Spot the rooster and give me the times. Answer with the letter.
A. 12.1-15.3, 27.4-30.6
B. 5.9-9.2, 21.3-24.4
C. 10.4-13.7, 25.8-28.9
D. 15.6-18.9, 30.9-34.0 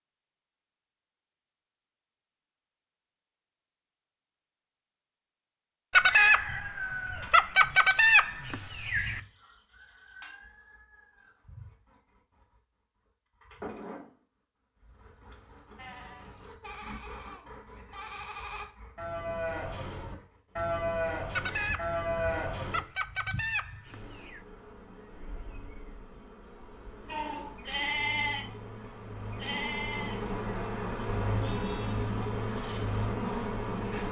B.